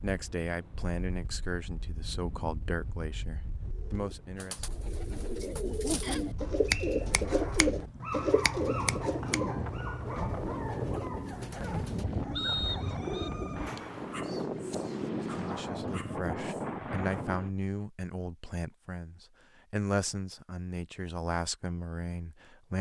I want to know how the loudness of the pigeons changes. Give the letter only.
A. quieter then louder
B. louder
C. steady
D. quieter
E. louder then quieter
E.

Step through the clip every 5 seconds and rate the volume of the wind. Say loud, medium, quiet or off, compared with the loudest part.
quiet, medium, loud, loud, off.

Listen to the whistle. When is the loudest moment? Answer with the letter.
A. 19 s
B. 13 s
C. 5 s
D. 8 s
B.